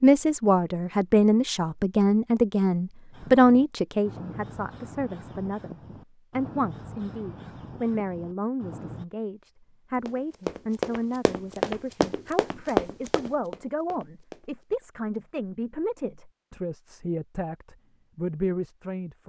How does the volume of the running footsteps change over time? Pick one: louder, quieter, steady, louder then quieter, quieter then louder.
quieter.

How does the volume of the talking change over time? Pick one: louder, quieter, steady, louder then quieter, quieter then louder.
quieter.